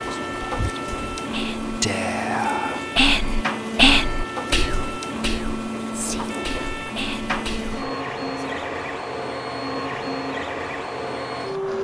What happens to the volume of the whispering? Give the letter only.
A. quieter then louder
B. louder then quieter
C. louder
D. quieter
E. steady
B.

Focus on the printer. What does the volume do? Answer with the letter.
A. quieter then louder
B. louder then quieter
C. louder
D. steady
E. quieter
D.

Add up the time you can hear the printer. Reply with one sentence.
The printer can be heard for 12 seconds in total.